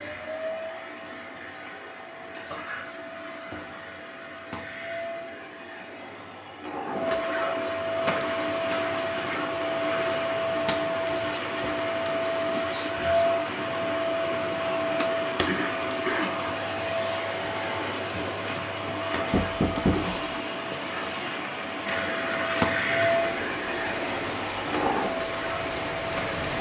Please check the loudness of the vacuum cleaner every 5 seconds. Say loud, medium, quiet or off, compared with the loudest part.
medium, loud, loud, loud, loud, medium.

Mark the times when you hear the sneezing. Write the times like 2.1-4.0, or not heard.
15.4-16.4.